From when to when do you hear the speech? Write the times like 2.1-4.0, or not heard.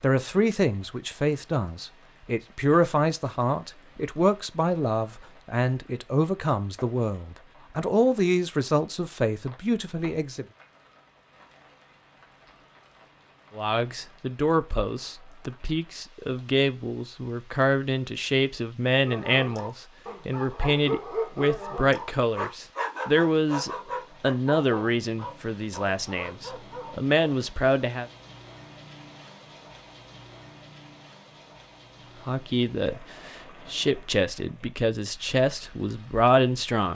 0.0-10.4, 13.6-28.1, 32.2-36.8.